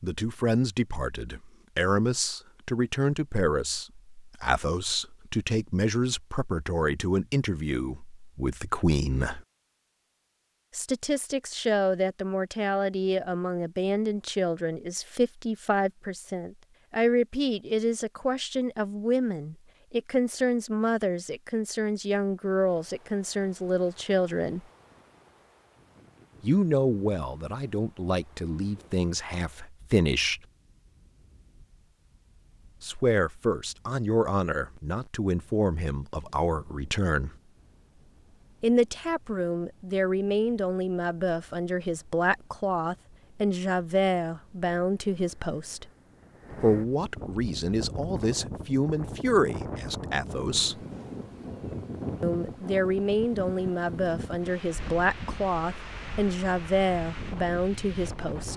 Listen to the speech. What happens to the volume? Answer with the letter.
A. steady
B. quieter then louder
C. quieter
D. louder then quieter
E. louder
A.